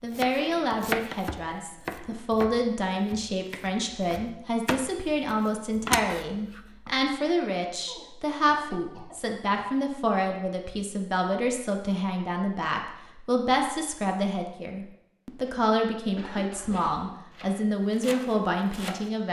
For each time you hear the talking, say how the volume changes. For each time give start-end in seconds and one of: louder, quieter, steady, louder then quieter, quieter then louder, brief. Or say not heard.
0.0-19.2 steady.